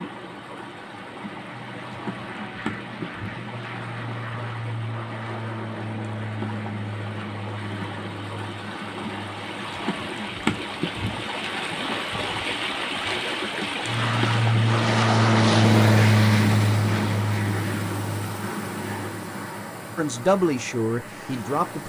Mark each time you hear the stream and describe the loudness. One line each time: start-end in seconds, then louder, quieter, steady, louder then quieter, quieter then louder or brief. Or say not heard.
0.0-21.8 louder then quieter.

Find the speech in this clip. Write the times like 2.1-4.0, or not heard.
19.9-21.8.